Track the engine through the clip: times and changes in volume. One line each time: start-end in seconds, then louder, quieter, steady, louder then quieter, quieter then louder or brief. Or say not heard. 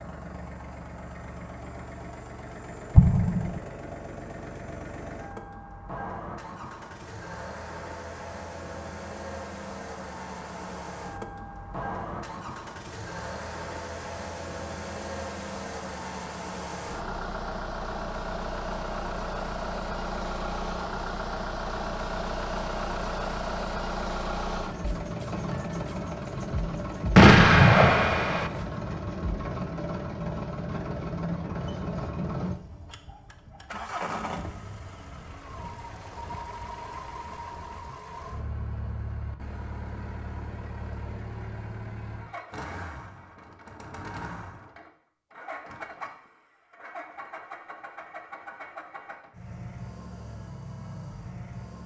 0.0-51.8 louder then quieter.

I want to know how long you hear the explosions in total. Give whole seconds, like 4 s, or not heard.
2 s.